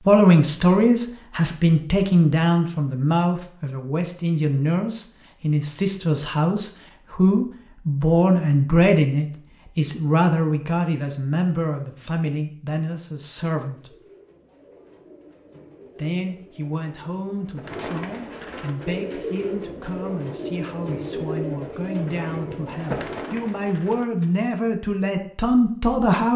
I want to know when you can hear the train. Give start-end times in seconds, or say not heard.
not heard.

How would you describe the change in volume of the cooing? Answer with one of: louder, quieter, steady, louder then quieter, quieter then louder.
louder.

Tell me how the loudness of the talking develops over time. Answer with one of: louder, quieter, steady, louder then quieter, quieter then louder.
quieter then louder.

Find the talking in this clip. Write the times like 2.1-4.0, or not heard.
0.1-13.9, 15.9-26.3.